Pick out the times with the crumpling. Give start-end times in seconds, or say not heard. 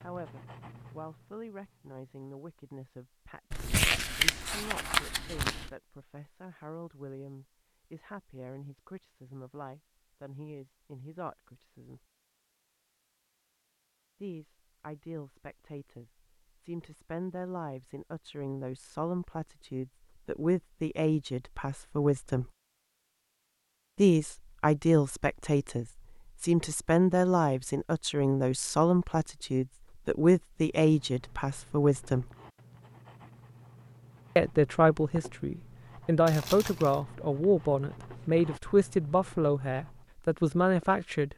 3.5-5.7, 36.2-37.0.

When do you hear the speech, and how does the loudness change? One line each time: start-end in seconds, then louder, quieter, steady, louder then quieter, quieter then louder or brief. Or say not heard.
0.0-12.0 steady
14.2-22.5 louder
23.9-32.2 steady
34.4-41.3 steady.